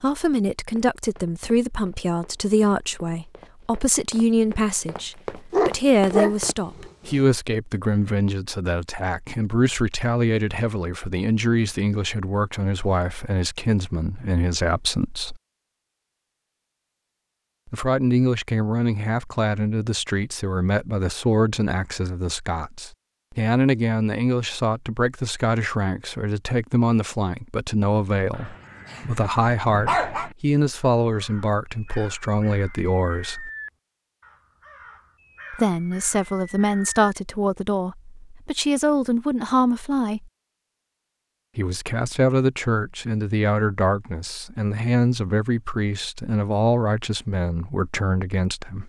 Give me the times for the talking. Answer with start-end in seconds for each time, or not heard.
0.0-15.4, 17.6-33.5, 35.5-40.3, 41.5-48.8.